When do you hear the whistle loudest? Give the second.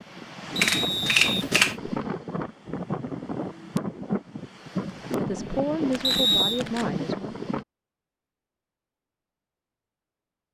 6 s.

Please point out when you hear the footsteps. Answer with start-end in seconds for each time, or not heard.
not heard.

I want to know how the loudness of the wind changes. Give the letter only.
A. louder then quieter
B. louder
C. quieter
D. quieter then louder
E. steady
E.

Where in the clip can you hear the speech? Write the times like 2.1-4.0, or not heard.
5.2-7.3.